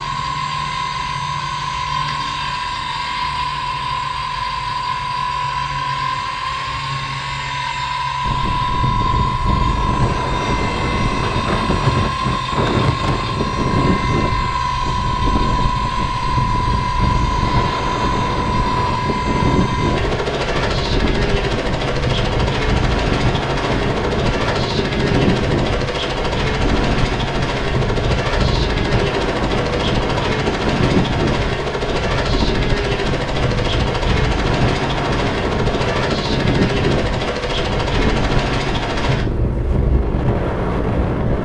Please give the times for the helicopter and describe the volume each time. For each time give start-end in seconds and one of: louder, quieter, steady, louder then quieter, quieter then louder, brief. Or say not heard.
0.0-41.4 steady.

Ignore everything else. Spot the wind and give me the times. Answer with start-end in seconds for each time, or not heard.
8.2-41.4.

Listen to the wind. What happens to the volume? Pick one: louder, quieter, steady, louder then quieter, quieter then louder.
steady.